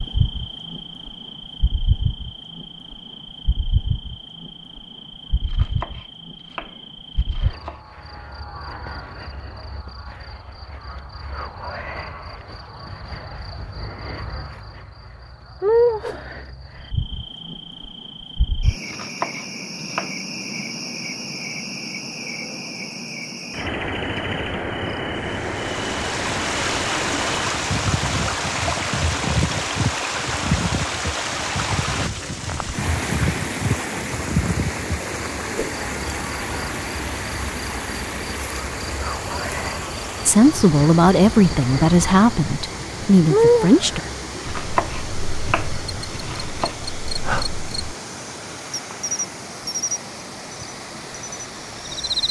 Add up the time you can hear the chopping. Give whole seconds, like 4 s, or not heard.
6 s.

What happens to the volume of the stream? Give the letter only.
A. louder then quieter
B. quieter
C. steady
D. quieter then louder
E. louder
B.